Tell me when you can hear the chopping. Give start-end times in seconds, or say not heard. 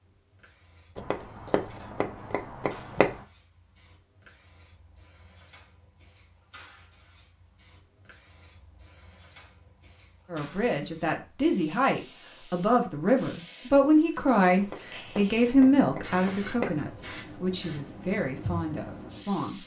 0.9-3.2, 14.6-16.8.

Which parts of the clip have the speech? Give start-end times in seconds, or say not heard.
10.3-19.6.